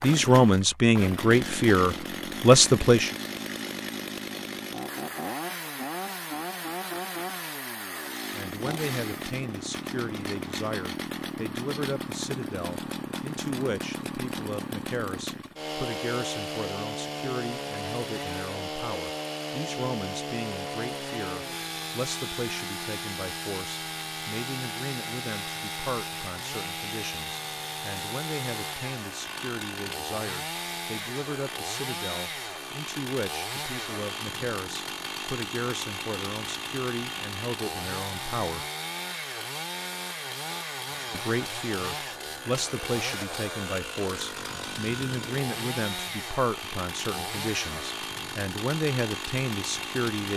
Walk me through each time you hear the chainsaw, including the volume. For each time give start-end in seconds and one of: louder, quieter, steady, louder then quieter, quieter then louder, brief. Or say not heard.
0.0-50.3 steady.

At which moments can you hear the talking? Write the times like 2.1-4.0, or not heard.
0.0-3.1, 8.3-38.6, 41.1-50.3.